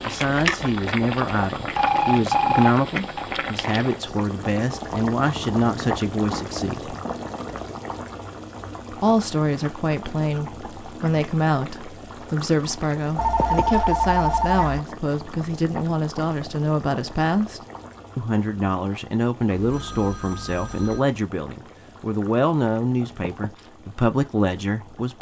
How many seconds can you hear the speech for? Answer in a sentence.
The speech can be heard for 23 seconds in total.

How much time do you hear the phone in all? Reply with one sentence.
You can hear the phone for 5 seconds altogether.